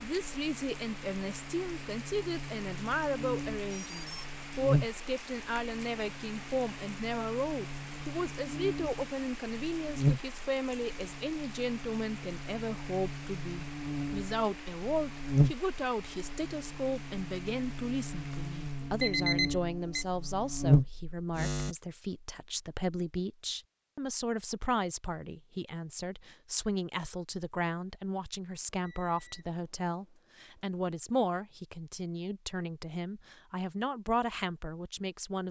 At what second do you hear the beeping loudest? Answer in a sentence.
The volume of the beeping peaks at 19 seconds.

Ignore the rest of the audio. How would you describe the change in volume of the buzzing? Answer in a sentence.
The loudness of the buzzing goes up.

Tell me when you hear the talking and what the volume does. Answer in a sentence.
You can hear the talking from 0.0 to 35.4 s, at a steady volume.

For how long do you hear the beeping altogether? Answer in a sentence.
The beeping can be heard for 4 seconds in total.